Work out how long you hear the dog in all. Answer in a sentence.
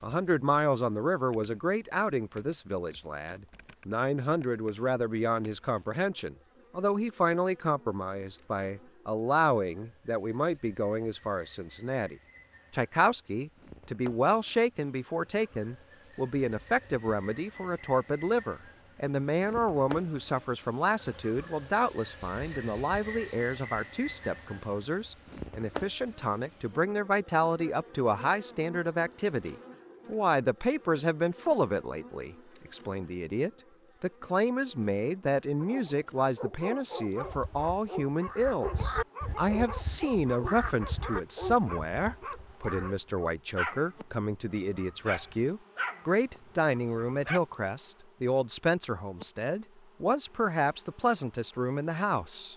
The dog can be heard for 12 seconds in total.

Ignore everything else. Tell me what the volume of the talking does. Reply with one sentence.
The volume of the talking stays about the same.